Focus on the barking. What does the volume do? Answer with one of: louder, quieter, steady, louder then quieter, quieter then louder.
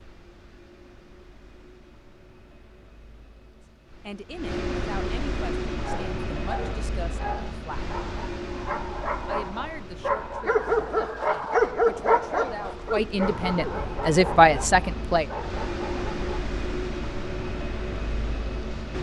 louder then quieter.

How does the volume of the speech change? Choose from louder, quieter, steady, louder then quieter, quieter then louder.
louder.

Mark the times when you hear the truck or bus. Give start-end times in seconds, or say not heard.
0.0-18.9.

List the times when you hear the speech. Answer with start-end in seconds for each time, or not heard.
4.0-7.8, 9.2-15.2.